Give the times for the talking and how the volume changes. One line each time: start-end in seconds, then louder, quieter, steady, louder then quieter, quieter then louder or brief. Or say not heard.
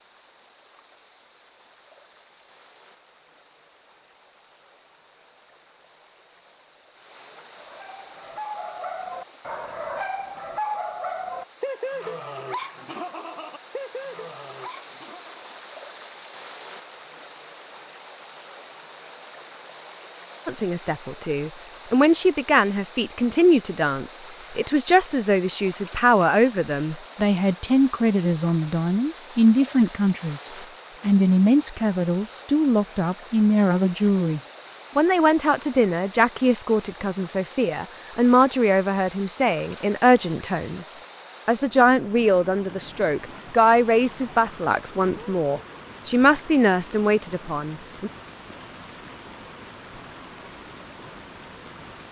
20.4-48.1 steady.